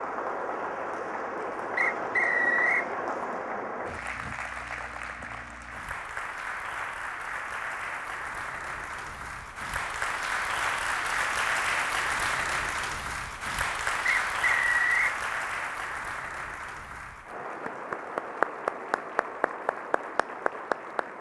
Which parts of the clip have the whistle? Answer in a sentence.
The whistle can be heard from 1.8 to 2.9 s and from 14.1 to 15.2 s.